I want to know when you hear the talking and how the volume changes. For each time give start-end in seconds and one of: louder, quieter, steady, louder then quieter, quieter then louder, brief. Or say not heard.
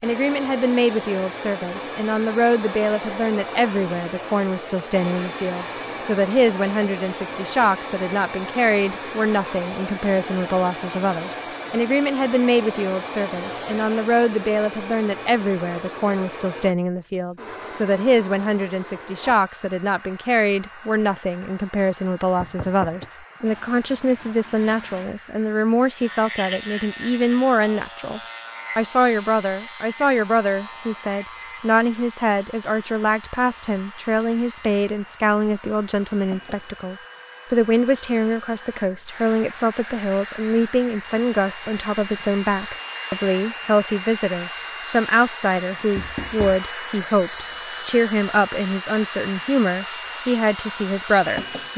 0.0-51.7 steady.